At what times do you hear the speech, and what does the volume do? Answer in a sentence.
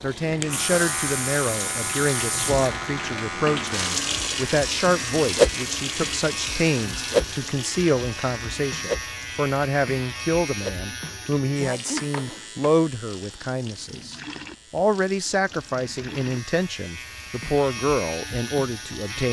The speech can be heard from 0.0 to 19.2 s, at a steady volume.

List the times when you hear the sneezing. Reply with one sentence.
You can hear the sneezing from 11.6 to 12.4 s.